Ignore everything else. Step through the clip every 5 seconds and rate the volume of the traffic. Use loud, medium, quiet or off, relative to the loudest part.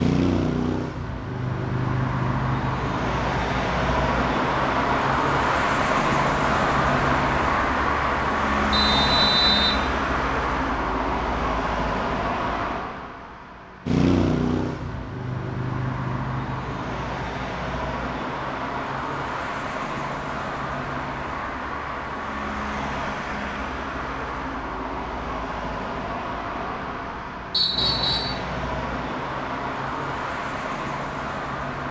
loud, loud, loud, medium, medium, medium, medium.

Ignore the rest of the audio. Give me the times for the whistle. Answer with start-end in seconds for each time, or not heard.
8.7-9.8, 27.5-28.4.